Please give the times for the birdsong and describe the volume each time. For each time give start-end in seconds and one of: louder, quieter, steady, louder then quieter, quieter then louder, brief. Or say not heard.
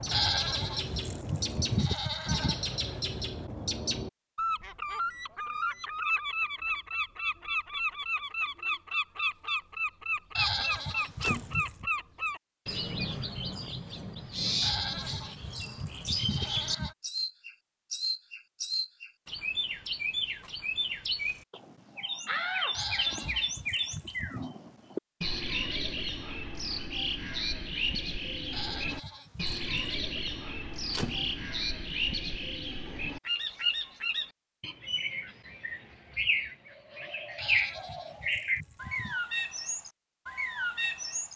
0.0-41.3 steady.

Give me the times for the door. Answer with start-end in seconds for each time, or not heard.
10.6-11.7, 22.2-23.9, 30.3-31.4.